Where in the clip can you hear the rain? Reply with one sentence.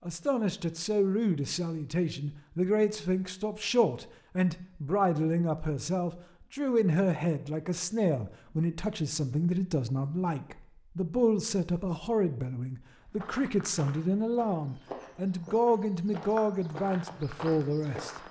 You can't hear the rain here.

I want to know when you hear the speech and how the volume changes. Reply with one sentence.
The speech can be heard from 0.0 to 18.1 s, at a steady volume.